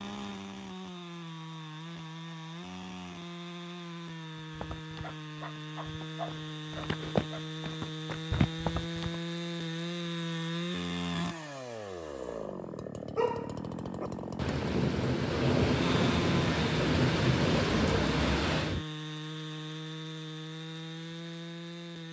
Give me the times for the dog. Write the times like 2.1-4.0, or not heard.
5.0-7.4, 13.2-14.1.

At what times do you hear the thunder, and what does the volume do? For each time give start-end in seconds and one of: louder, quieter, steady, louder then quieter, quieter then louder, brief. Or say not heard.
14.3-18.9 steady.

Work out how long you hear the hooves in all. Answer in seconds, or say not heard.
5 s.